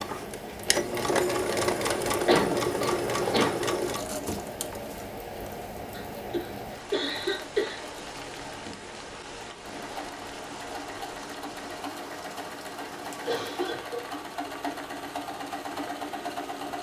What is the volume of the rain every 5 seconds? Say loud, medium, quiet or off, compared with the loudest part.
loud, loud, medium, medium.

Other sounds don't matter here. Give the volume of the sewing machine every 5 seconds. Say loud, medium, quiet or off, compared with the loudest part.
loud, quiet, medium, medium.